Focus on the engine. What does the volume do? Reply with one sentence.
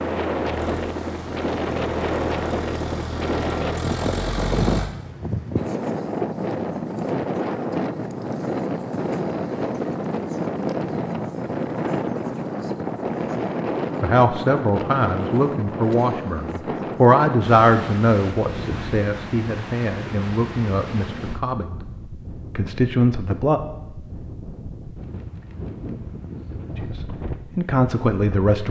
The volume of the engine goes up.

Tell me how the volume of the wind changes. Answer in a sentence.
The volume of the wind goes down.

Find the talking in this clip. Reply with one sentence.
You can hear the talking from 14.0 to 21.8 s, from 22.6 to 23.6 s and from 26.8 to 28.6 s.